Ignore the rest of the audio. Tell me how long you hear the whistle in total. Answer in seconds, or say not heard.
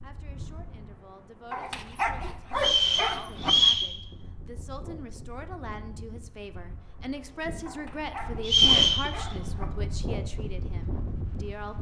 2 s.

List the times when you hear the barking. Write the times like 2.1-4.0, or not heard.
1.5-3.5, 7.7-9.7.